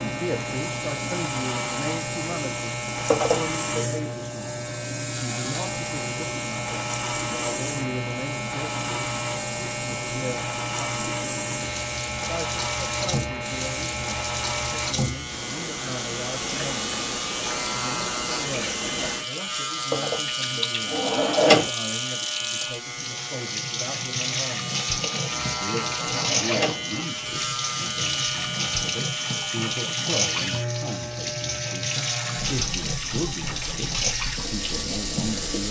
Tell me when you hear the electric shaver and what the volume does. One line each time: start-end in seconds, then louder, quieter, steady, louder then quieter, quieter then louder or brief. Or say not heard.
0.0-35.6 steady.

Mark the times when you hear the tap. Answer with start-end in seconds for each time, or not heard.
0.0-35.6.